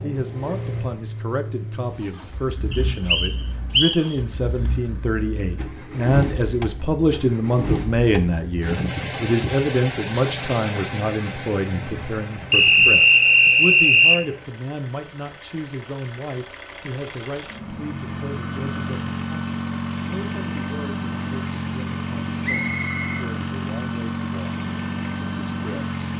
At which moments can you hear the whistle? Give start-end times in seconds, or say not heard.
2.7-4.0, 12.5-14.2, 22.4-23.2.